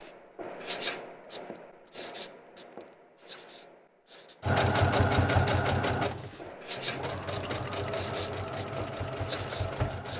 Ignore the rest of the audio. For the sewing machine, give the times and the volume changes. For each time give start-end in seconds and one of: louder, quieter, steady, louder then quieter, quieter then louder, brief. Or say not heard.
4.4-10.1 quieter.